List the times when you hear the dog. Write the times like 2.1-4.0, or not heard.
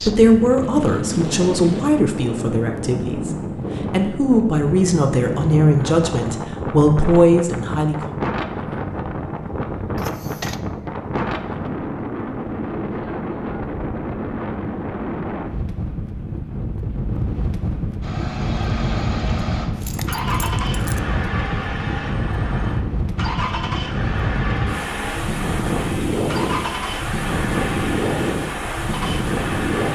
not heard.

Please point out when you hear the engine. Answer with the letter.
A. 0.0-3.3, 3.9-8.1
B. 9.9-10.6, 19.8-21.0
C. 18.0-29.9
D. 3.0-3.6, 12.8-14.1
C.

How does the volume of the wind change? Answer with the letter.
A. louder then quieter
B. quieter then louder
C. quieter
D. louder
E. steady
E.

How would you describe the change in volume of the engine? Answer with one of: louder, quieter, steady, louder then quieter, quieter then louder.
steady.